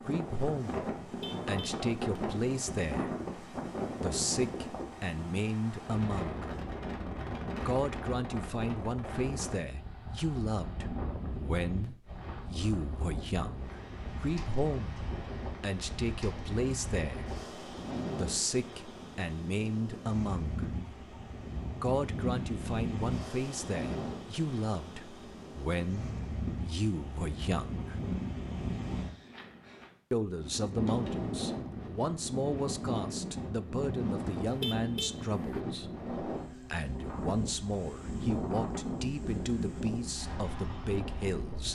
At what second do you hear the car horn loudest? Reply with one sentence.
The volume of the car horn peaks at 35 seconds.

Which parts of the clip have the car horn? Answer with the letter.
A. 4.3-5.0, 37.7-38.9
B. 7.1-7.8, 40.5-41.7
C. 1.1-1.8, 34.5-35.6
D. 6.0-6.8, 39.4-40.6
C.